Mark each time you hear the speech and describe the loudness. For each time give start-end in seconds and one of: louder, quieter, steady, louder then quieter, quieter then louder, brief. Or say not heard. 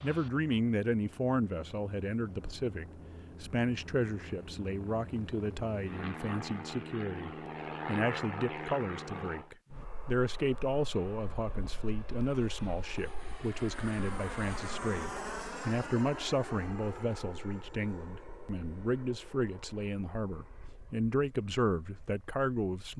0.0-22.9 steady.